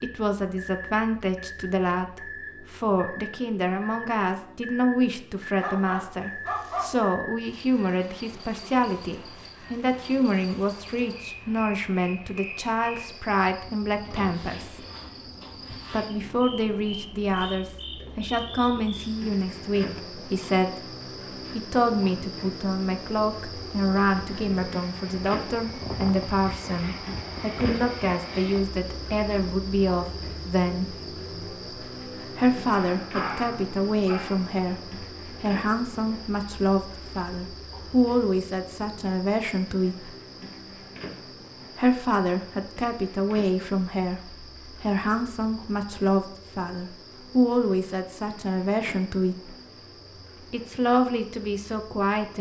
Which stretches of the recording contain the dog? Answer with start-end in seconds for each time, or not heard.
5.6-7.1, 32.8-34.5.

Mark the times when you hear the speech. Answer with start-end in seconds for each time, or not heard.
0.0-14.8, 15.9-20.7, 21.6-30.9, 32.4-40.1, 41.8-49.5, 50.5-52.3.